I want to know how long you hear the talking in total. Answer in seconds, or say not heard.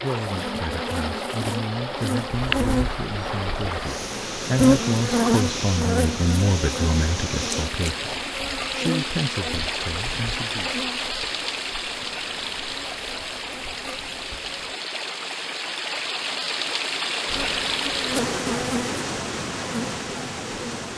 11 s.